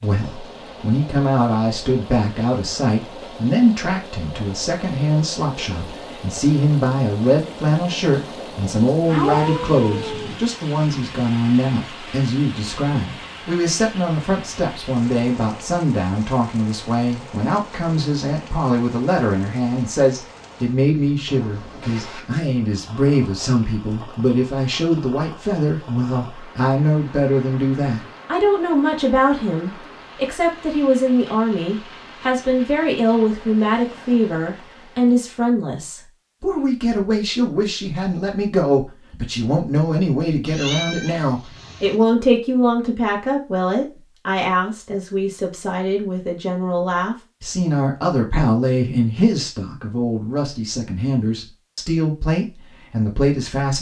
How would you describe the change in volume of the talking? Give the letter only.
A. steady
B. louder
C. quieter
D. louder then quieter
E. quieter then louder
A.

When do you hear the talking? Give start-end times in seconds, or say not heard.
0.0-53.7.